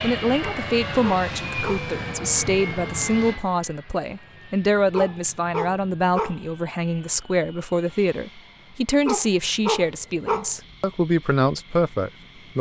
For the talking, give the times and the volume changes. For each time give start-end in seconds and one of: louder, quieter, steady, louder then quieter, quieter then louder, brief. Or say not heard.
0.0-12.5 steady.